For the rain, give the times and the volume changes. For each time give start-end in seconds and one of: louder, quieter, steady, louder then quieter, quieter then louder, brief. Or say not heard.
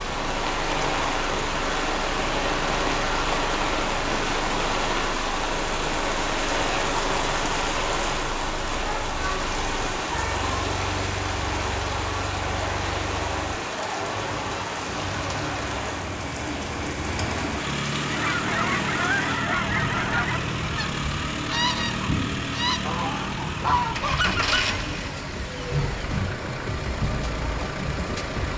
0.0-28.5 quieter.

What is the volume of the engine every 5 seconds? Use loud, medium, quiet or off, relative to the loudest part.
medium, medium, medium, loud, loud, loud.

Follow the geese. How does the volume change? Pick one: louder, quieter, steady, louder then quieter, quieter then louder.
steady.